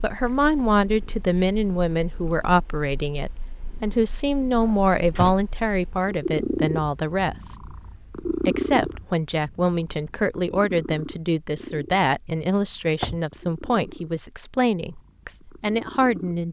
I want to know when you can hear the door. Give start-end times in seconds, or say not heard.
4.6-5.3, 12.6-13.2.